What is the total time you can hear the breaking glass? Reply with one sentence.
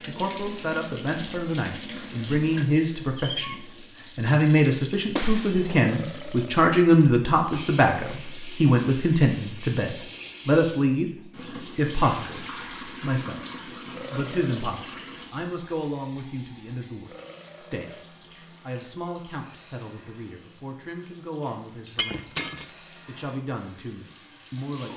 The breaking glass can be heard for 3 seconds in total.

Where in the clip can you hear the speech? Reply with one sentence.
The speech can be heard from 0.1 to 3.5 s, from 4.2 to 13.4 s, from 14.1 to 22.4 s and from 23.1 to 24.9 s.